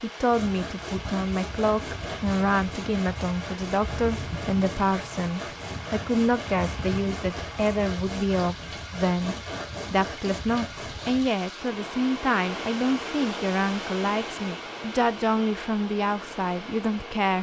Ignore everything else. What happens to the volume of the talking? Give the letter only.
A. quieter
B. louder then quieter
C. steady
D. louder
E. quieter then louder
C.